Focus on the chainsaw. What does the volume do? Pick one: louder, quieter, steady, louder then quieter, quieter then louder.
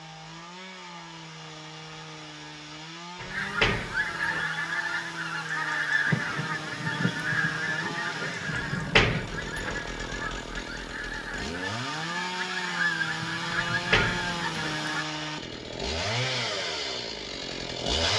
louder.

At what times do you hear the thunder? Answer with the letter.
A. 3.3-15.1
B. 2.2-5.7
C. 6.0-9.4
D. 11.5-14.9
C.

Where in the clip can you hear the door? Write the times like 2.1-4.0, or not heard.
3.2-4.5, 8.5-9.8, 13.7-14.8.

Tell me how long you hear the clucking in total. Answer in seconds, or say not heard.
12 s.